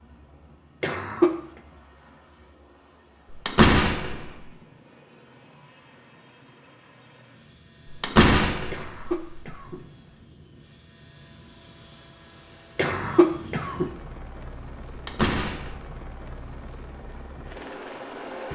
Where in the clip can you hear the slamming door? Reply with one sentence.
You can hear the slamming door from 3.3 to 4.5 s, from 7.8 to 9.5 s and from 14.9 to 15.8 s.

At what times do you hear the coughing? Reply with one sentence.
The coughing can be heard from 0.8 to 1.3 s, from 8.7 to 10.2 s and from 12.8 to 13.9 s.